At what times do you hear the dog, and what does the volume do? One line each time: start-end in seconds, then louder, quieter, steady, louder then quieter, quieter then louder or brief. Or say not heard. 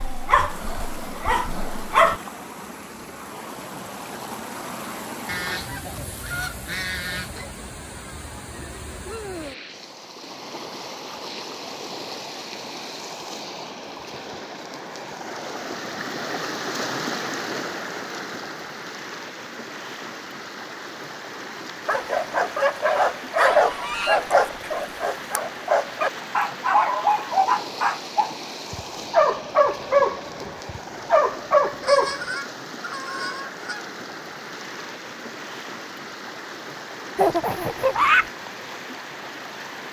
0.0-2.2 brief
21.9-32.2 steady.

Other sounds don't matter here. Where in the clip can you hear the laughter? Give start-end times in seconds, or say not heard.
37.1-38.3.